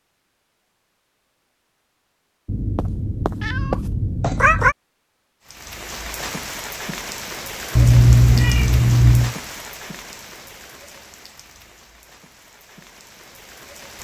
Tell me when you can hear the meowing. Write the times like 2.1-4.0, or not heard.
2.5-4.8, 7.8-9.3.